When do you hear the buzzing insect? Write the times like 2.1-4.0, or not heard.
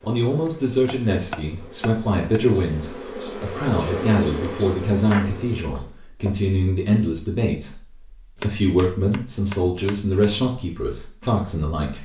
0.0-6.0.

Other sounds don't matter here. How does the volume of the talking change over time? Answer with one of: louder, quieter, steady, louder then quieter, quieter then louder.
steady.